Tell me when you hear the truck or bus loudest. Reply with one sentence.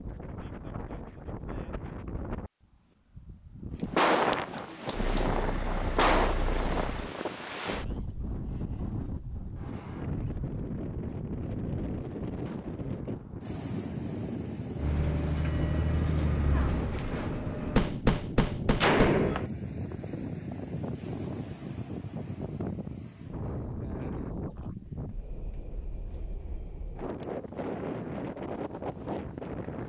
The loudest moment of the truck or bus is at 18 seconds.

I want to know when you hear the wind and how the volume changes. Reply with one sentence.
The wind can be heard from 0.0 to 29.8 s, at a steady volume.